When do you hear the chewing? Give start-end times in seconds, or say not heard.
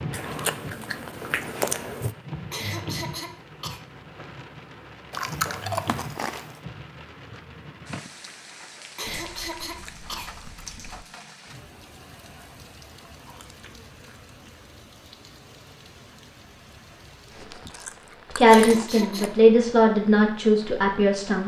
0.1-2.1, 5.1-6.6, 9.2-11.1, 13.2-14.3, 17.3-19.1.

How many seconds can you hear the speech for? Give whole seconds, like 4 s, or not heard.
3 s.